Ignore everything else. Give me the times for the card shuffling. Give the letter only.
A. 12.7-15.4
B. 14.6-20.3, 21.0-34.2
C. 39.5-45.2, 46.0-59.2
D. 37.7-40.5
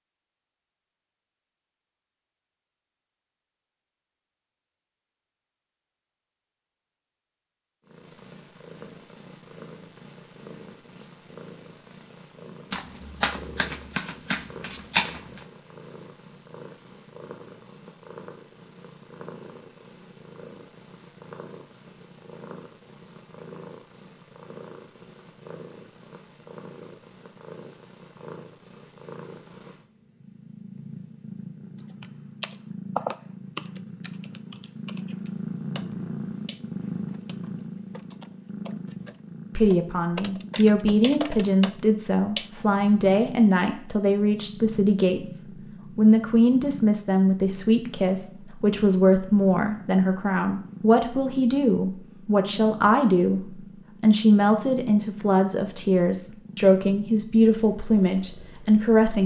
A.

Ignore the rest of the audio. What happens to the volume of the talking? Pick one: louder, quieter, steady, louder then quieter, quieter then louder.
steady.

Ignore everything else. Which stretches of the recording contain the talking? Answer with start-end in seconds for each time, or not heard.
39.5-45.2, 46.0-59.2.